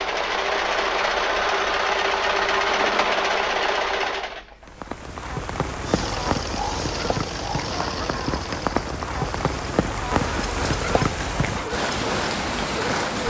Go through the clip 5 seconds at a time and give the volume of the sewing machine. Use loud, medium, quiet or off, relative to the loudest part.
loud, medium, medium.